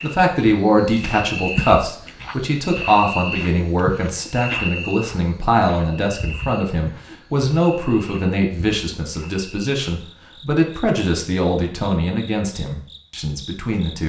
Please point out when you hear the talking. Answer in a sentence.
You can hear the talking from 0.0 to 14.0 s.